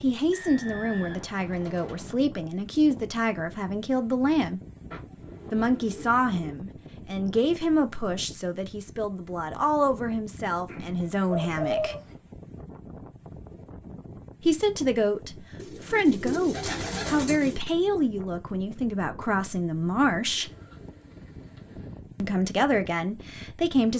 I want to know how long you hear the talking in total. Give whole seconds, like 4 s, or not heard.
19 s.